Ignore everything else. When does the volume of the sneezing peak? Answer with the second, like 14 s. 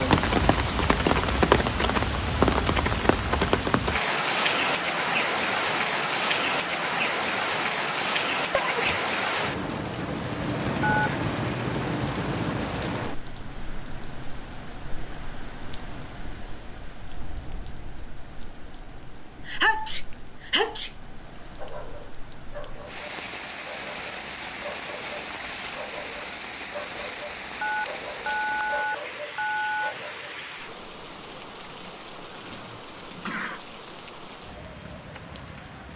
20 s.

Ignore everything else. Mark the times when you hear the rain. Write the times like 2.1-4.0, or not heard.
0.0-35.9.